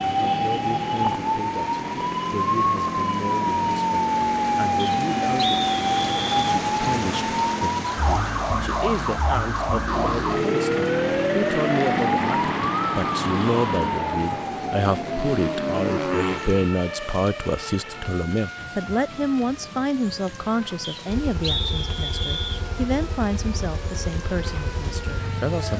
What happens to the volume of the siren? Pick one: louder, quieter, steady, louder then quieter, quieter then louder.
quieter.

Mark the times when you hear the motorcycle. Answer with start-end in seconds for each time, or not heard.
0.0-7.8, 9.8-16.7, 21.1-25.7.